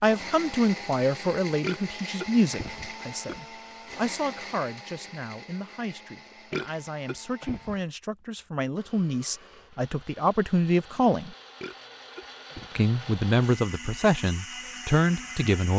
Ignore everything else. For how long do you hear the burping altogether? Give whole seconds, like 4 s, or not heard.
4 s.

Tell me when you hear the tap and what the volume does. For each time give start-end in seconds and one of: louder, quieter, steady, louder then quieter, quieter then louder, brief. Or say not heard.
not heard.